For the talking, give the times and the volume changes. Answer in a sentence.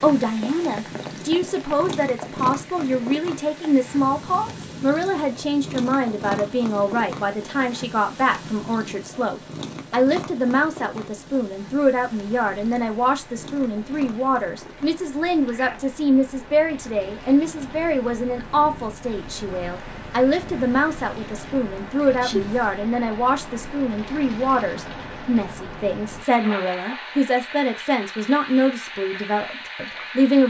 You can hear the talking from 0.0 to 30.4 s, at a steady volume.